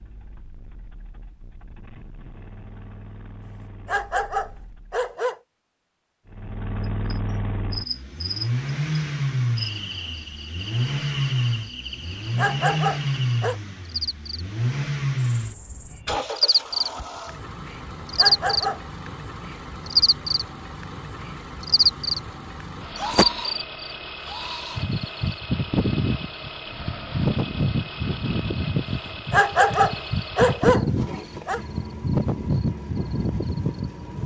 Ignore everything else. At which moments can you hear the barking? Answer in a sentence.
You can hear the barking from 3.5 to 5.4 s, from 11.9 to 13.6 s, from 17.8 to 18.8 s and from 28.9 to 31.6 s.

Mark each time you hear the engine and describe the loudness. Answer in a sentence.
You can hear the engine from 0.0 to 5.2 s, getting louder then quieter; and from 6.2 to 34.2 s, getting quieter.